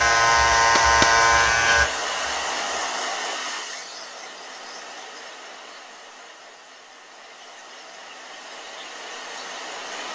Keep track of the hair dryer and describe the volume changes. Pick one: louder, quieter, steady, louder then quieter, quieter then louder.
quieter then louder.